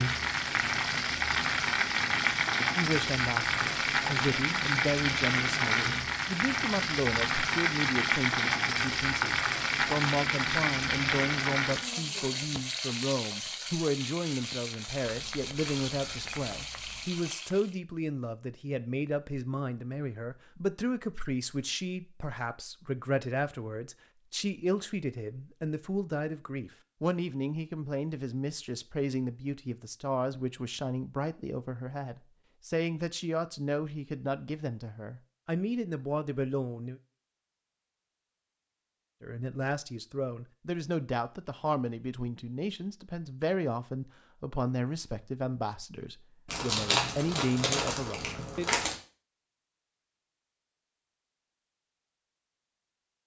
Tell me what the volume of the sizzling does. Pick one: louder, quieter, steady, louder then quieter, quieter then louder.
quieter.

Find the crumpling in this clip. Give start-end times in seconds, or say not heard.
15.0-17.1, 46.5-49.0.